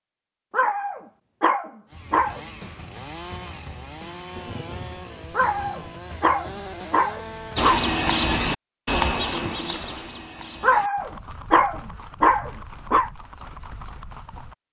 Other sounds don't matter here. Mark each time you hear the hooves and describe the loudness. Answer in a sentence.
You can hear the hooves from 7.5 to 14.6 s, getting quieter.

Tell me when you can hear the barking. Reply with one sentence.
The barking can be heard from 0.5 to 2.4 s, from 5.3 to 7.8 s and from 10.6 to 13.1 s.